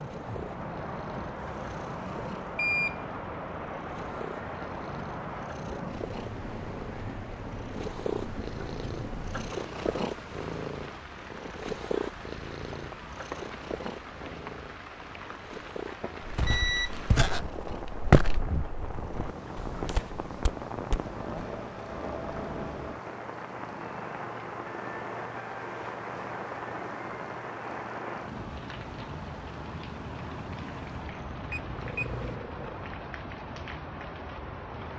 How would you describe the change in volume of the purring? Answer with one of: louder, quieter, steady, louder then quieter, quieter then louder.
louder then quieter.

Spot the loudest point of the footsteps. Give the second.
18 s.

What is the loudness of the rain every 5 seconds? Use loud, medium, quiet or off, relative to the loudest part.
loud, loud, medium, loud, loud, loud, loud.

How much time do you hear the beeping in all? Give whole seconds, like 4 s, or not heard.
3 s.